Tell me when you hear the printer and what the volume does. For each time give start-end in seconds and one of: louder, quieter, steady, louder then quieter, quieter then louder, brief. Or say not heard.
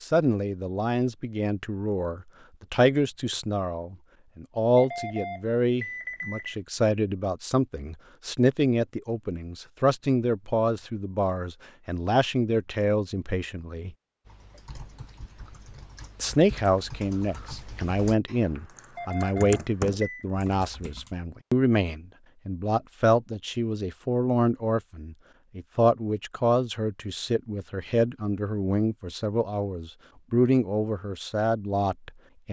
not heard.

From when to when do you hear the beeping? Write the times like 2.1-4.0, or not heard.
4.8-6.5, 18.9-20.2.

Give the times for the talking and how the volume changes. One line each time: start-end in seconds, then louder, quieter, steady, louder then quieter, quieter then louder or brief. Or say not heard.
0.0-13.9 steady
16.2-32.4 steady.